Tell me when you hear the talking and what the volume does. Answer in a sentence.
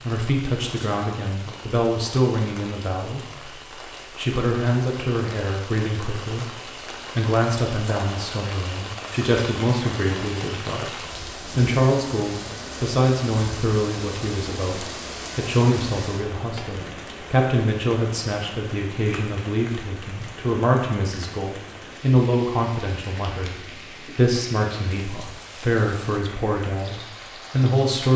The talking can be heard from 0.0 to 28.1 s, at a steady volume.